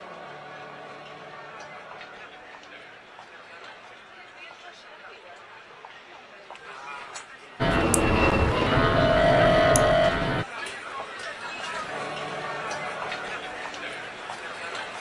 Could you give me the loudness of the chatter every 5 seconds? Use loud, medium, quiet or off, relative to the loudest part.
medium, medium, loud.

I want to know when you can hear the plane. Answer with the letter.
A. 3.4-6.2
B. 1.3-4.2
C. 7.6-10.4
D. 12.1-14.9
C.